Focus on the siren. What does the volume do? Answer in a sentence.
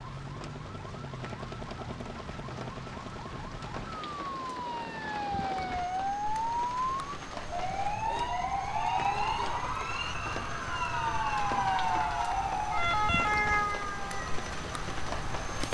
The volume of the siren goes up.